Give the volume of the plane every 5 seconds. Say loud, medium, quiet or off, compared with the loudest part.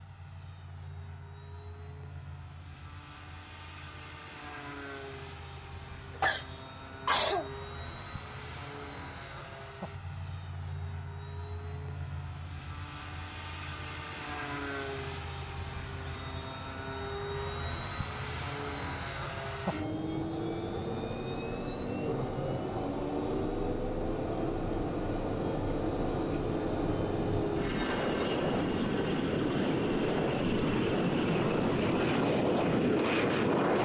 quiet, quiet, quiet, medium, medium, loud, loud.